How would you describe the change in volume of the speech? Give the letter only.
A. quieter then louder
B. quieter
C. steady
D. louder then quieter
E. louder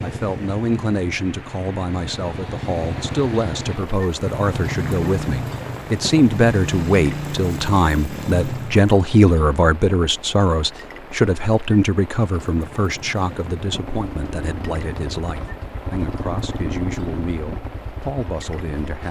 D.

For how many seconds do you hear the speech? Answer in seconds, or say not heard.
19 s.